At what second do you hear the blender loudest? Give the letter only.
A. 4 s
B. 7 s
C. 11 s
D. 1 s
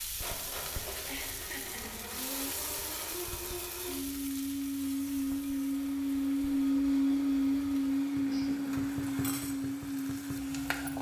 B.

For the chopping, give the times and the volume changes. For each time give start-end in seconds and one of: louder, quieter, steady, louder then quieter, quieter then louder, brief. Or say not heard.
not heard.